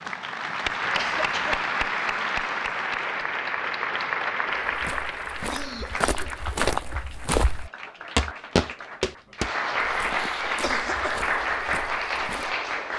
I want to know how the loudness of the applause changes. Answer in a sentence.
The loudness of the applause goes down, then up.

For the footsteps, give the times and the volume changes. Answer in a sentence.
You can hear the footsteps from 4.7 to 12.6 s, getting louder then quieter.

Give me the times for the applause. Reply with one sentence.
You can hear the applause from 0.0 to 12.9 s.